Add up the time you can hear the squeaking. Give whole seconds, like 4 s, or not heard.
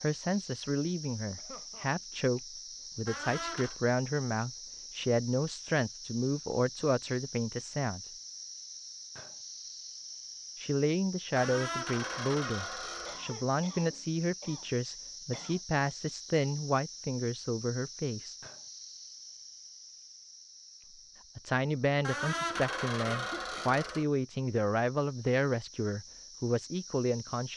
5 s.